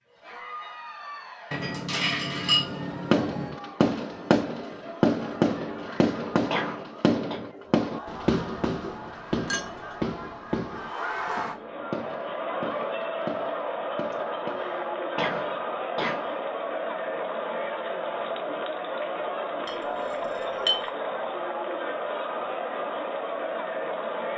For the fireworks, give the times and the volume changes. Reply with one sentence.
You can hear the fireworks from 2.6 to 14.7 s, getting quieter.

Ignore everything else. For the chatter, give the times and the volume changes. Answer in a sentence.
You can hear the chatter from 0.1 to 24.3 s, getting louder.